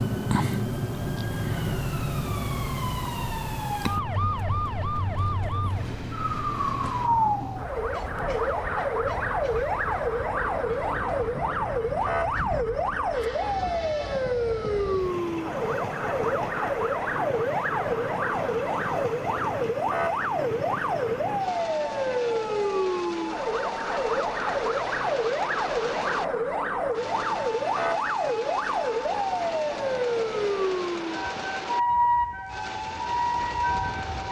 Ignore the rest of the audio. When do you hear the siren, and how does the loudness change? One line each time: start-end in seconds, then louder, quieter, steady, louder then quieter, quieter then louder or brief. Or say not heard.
0.0-34.2 steady.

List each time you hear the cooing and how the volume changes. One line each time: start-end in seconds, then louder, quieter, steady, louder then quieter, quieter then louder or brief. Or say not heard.
not heard.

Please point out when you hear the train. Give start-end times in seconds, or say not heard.
4.1-34.2.